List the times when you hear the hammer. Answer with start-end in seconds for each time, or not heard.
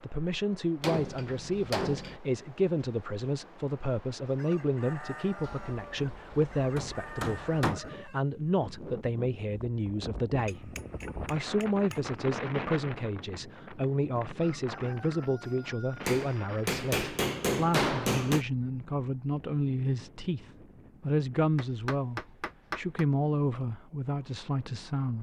0.8-2.2, 5.4-7.8, 10.3-12.2, 16.0-18.4, 21.6-23.1.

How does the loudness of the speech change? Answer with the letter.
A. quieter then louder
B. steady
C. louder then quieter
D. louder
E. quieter
B.